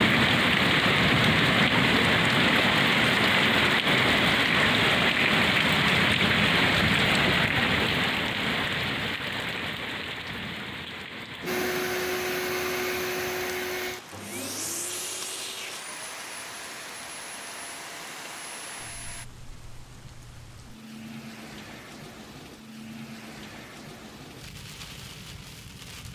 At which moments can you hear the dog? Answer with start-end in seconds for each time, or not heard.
not heard.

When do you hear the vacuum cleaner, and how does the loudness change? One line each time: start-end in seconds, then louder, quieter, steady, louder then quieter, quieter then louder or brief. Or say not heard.
11.4-19.2 quieter.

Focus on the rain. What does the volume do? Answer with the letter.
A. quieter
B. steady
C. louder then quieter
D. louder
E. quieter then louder
A.